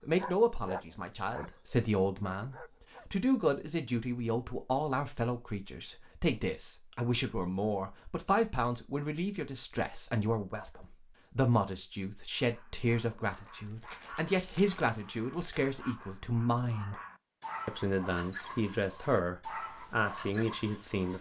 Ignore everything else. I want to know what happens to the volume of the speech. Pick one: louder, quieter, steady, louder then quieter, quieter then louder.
steady.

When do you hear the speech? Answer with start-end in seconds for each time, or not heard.
0.0-17.0, 17.6-21.1.